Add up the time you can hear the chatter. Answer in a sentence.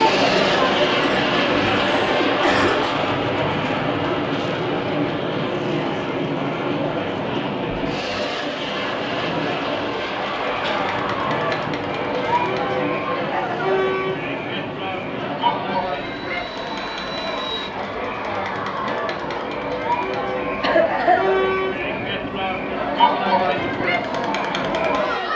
The chatter can be heard for 25 seconds in total.